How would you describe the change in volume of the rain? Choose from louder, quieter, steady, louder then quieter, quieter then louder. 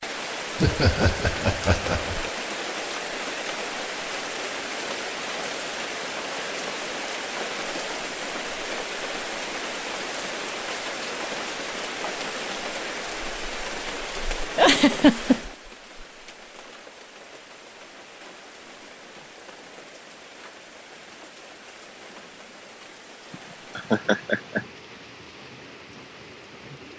quieter.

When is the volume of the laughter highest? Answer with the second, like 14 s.
15 s.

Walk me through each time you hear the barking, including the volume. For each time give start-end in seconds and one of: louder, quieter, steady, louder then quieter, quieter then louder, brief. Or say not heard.
not heard.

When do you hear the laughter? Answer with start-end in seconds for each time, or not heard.
0.6-2.3, 14.6-15.4, 23.3-24.6.